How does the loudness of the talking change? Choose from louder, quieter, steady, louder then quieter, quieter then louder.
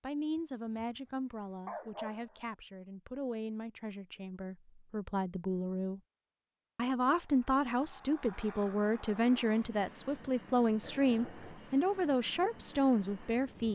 louder.